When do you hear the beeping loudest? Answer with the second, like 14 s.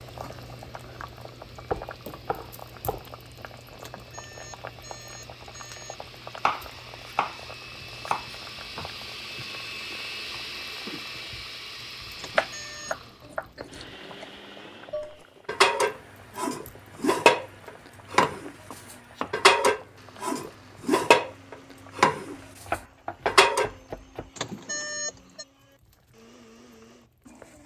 25 s.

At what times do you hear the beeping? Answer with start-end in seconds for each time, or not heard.
3.8-6.0, 12.2-12.9, 24.4-25.4.